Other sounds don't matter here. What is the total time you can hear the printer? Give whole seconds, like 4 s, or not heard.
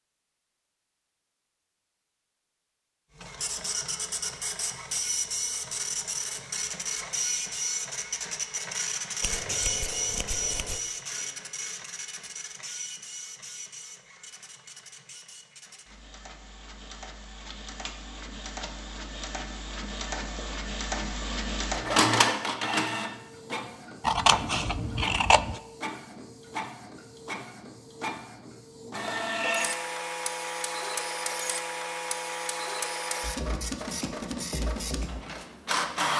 33 s.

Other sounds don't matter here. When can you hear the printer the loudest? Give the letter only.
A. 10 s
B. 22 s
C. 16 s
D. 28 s
B.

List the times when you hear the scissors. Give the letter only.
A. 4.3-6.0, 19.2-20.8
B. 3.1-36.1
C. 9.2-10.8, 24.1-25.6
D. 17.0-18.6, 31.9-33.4
C.